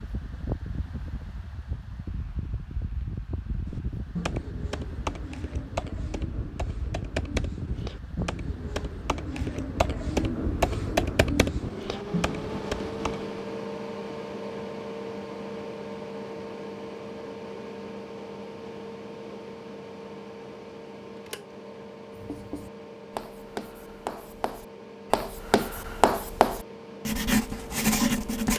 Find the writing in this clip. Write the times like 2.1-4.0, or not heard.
22.1-28.5.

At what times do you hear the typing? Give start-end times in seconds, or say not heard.
3.6-13.2.